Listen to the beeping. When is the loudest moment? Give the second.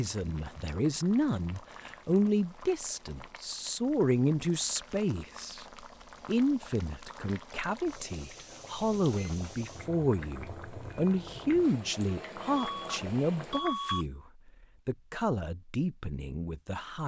14 s.